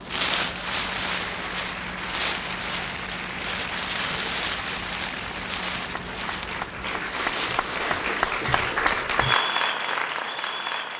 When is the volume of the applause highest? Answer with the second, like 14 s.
9 s.